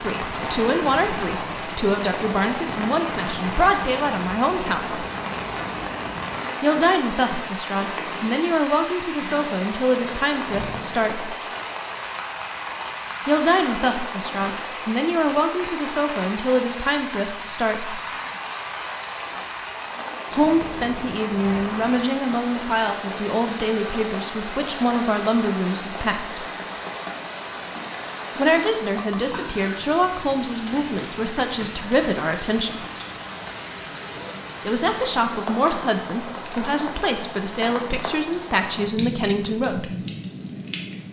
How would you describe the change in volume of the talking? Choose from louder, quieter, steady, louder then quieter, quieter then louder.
steady.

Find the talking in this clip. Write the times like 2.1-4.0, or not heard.
0.0-5.0, 6.6-11.3, 13.2-18.0, 20.3-26.4, 28.4-32.9, 34.6-39.9.